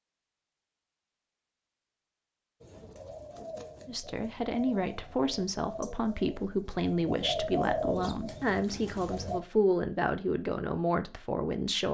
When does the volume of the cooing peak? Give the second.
8 s.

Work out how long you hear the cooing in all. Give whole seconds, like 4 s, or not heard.
7 s.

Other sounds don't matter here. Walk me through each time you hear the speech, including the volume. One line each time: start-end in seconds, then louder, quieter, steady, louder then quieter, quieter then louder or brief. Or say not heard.
3.9-11.8 steady.